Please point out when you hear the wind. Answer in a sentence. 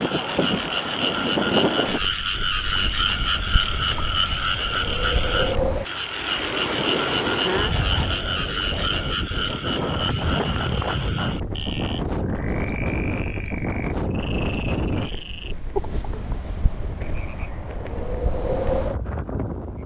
You can hear the wind from 0.0 to 19.8 s.